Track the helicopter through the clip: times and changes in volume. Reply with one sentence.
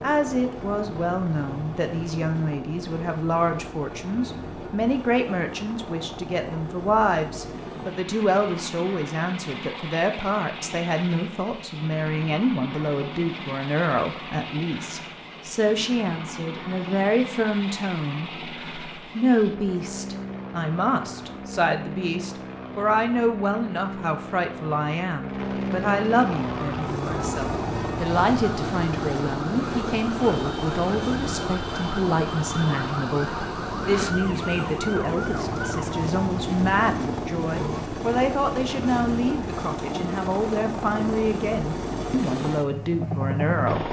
The helicopter can be heard from 0.0 to 43.8 s, getting louder.